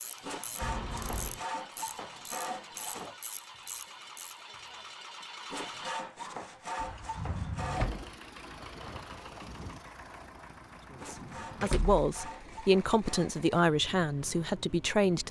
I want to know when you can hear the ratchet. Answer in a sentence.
The ratchet can be heard from 0.0 to 4.5 s.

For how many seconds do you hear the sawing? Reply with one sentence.
You can hear the sawing for 8 seconds altogether.